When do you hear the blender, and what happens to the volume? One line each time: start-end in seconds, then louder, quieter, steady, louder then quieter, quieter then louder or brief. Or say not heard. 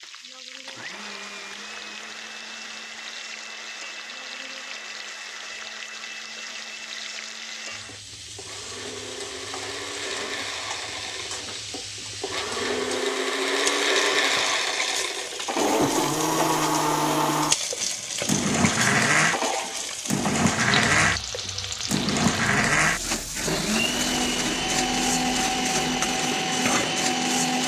0.0-27.6 louder.